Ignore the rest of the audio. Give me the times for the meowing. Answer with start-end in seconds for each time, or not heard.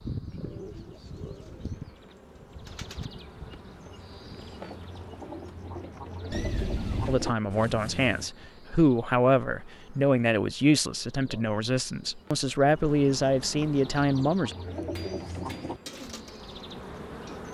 6.3-7.2.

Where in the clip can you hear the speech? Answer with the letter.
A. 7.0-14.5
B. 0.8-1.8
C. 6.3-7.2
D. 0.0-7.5
A.